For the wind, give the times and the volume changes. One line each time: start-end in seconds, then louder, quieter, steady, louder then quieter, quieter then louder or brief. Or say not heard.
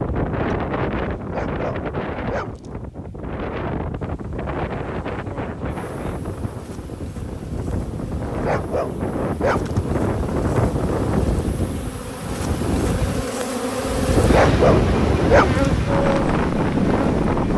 0.0-17.5 louder.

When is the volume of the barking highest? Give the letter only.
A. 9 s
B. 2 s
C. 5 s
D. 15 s
D.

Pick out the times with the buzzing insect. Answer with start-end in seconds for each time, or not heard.
4.0-17.5.